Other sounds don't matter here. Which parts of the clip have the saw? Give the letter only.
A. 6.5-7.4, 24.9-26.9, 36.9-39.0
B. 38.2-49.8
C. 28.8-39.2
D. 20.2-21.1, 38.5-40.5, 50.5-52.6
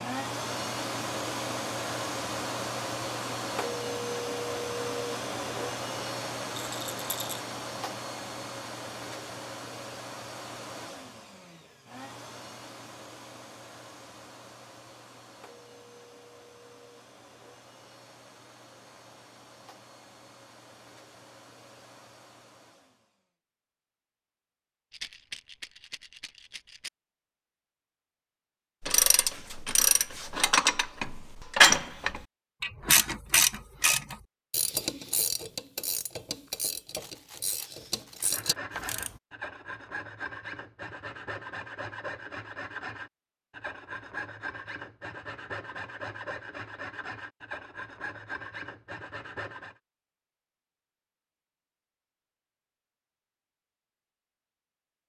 B.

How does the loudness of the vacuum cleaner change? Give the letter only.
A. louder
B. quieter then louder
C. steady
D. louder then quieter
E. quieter
E.